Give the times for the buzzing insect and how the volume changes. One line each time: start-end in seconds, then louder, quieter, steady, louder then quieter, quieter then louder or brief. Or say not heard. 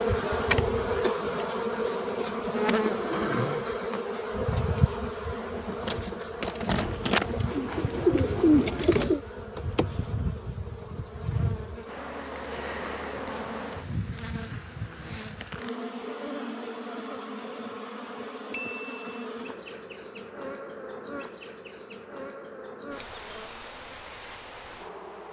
0.0-25.2 quieter.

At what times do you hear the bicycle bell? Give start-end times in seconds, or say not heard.
18.5-19.2.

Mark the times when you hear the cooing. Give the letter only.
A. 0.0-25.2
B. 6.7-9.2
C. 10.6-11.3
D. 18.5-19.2
B.